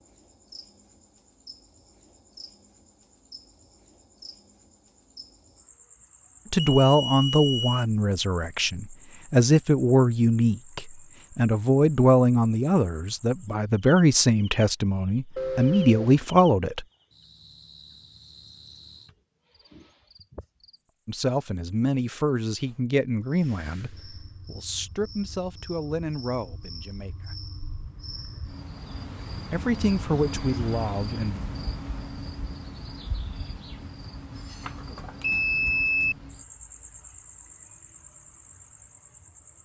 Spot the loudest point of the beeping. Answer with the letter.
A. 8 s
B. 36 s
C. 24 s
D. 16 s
B.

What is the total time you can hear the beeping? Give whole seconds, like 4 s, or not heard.
4 s.